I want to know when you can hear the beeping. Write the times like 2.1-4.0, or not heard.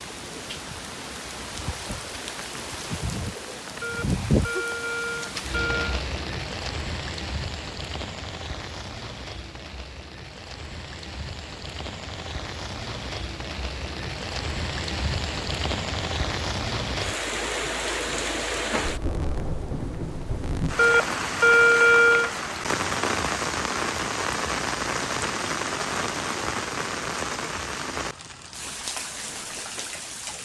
3.8-6.0, 20.8-22.3.